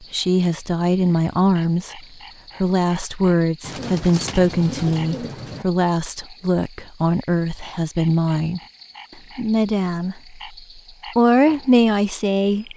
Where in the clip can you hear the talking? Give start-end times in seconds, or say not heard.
0.1-2.0, 2.6-8.6, 9.3-10.4, 11.2-12.7.